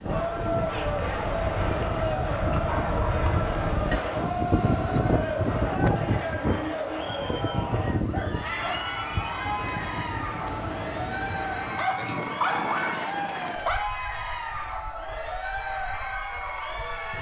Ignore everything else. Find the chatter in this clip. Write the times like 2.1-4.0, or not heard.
0.0-17.1.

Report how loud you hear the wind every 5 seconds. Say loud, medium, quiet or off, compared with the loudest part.
loud, loud, medium, quiet.